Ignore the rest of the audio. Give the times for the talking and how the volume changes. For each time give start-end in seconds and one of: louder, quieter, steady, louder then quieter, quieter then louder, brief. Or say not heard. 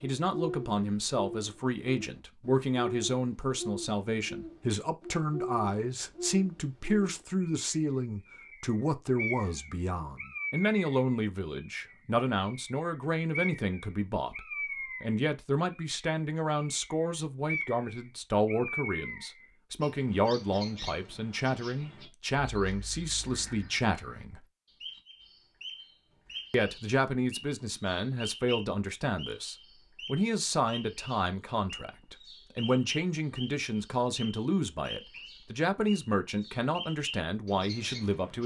0.0-24.4 steady
26.5-38.4 steady.